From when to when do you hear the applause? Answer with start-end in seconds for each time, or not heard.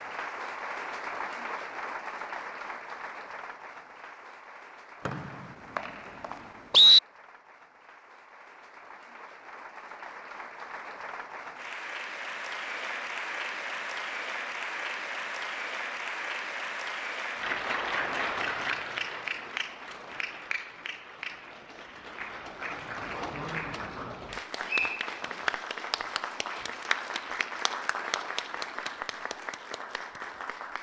0.0-30.7.